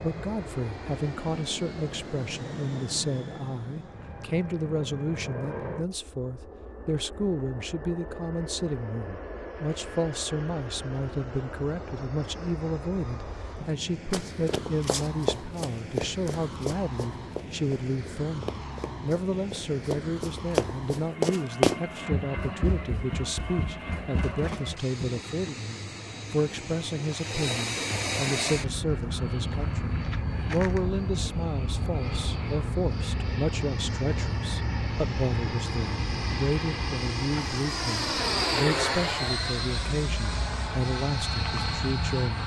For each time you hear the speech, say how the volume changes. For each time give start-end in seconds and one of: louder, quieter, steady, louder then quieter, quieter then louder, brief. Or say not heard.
0.0-42.4 steady.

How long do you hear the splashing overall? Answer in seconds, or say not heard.
not heard.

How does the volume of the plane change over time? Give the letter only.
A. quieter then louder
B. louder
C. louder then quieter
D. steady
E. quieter
B.